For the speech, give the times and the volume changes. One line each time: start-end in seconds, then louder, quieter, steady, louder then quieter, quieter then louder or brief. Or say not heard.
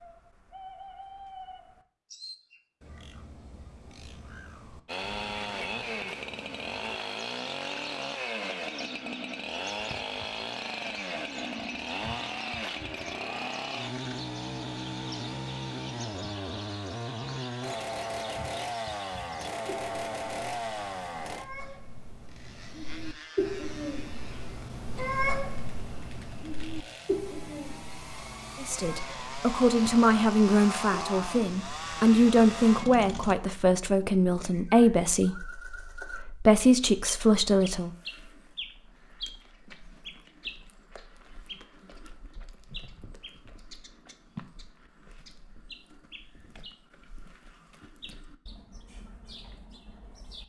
28.6-37.9 steady.